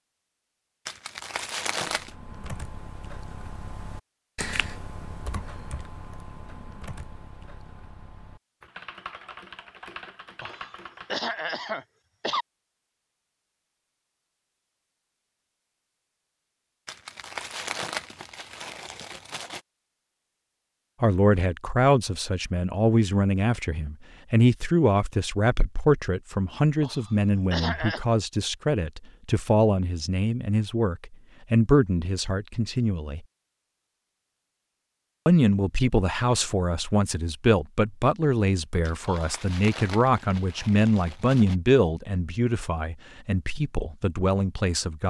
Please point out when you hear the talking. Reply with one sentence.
The talking can be heard from 21.0 to 33.2 s and from 35.2 to 45.0 s.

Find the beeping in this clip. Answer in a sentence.
You can't hear the beeping here.